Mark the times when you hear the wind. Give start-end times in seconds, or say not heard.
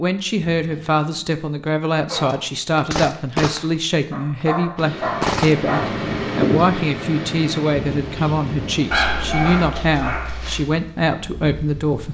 4.8-12.0.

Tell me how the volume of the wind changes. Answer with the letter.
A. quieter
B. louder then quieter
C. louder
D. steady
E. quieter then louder
A.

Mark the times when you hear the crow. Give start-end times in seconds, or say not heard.
not heard.